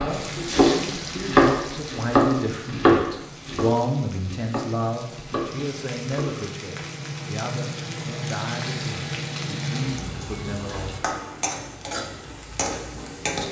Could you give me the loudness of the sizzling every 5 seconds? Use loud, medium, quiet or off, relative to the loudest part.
medium, loud, loud.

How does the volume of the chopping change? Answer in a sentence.
The volume of the chopping goes down.